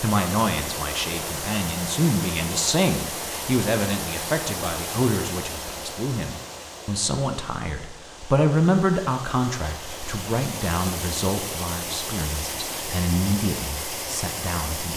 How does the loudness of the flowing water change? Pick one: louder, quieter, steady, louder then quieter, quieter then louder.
quieter then louder.